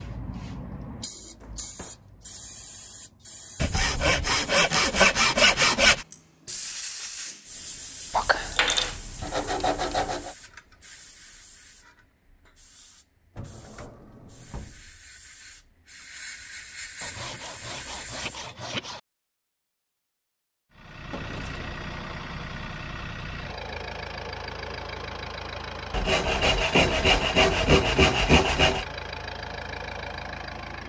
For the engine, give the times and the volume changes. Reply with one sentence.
The engine can be heard from 20.7 to 30.8 s, at a steady volume.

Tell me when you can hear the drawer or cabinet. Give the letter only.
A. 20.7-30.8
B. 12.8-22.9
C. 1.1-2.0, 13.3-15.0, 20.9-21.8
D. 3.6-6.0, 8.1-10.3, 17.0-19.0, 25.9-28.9
C.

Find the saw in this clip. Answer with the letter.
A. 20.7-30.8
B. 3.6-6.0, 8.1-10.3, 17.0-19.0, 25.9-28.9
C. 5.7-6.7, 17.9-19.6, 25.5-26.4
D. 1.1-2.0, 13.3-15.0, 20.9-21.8
B.